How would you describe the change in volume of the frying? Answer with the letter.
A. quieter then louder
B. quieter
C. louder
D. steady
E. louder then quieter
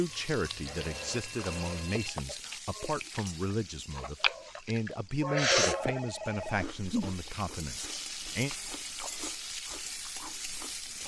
A.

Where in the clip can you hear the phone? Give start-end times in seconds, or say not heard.
0.1-2.1, 5.7-6.7.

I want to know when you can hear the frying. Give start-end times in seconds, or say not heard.
0.0-11.0.